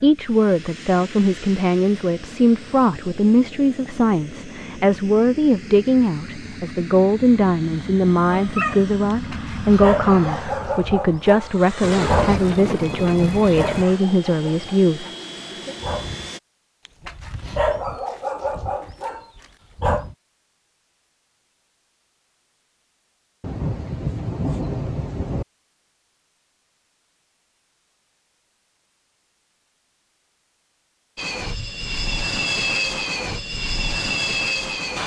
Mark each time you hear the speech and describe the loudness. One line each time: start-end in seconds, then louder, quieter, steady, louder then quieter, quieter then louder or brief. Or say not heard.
0.0-15.8 steady.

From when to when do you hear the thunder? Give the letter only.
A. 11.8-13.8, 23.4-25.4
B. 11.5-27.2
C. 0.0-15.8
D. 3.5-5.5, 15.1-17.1
A.